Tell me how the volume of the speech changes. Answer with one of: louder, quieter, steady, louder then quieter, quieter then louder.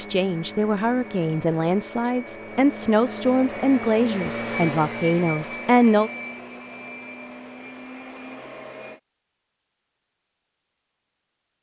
steady.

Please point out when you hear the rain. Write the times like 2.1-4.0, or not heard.
not heard.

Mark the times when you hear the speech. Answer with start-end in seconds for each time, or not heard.
0.0-6.1.